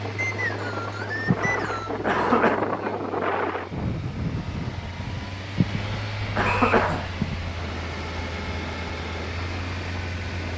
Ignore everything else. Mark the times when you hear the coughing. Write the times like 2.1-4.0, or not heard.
1.2-2.6, 5.5-7.4.